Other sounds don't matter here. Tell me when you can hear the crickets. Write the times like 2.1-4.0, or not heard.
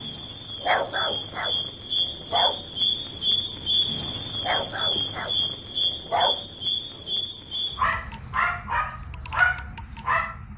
0.0-10.5.